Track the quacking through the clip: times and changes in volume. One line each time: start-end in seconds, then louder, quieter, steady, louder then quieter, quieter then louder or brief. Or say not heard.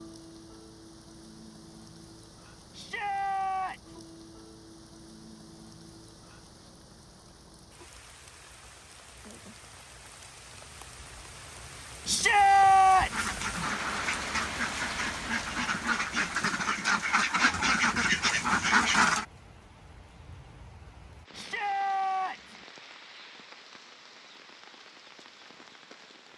13.1-19.2 louder.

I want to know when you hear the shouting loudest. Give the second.
13 s.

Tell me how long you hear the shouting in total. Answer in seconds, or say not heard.
4 s.